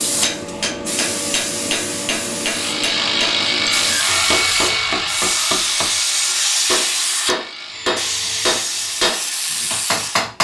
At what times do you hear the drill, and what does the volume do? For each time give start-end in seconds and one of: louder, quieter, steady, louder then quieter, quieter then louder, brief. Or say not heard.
2.4-9.1 quieter.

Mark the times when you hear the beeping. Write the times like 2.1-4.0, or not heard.
not heard.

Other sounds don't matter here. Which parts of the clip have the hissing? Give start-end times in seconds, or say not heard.
0.0-10.2.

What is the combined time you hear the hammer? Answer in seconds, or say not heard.
10 s.